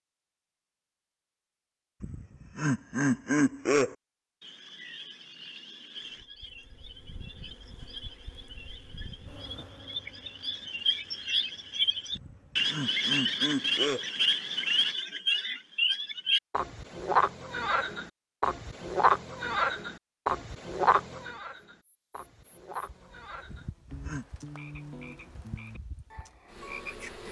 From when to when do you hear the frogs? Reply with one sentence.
You can hear the frogs from 4.4 to 27.2 s.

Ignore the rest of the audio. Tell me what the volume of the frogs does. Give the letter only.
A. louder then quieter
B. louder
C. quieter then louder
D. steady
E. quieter
A.